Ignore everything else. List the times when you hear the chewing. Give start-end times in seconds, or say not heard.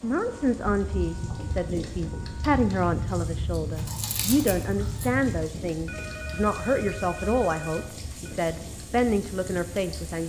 2.5-5.3.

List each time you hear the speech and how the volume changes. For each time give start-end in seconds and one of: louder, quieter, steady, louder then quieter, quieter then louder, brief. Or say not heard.
0.0-10.2 steady.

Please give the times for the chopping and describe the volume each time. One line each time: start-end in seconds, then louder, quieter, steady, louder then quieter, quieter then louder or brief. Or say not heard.
not heard.